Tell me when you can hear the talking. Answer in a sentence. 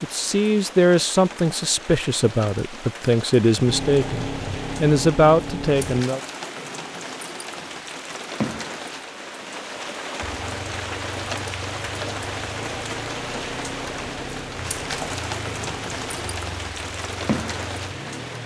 You can hear the talking from 0.0 to 6.2 s.